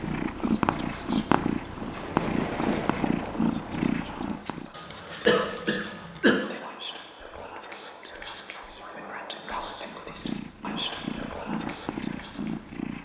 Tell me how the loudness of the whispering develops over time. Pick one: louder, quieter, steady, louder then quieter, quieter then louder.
louder.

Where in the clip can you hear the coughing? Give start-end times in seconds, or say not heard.
5.2-6.3.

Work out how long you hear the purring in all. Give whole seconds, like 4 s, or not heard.
8 s.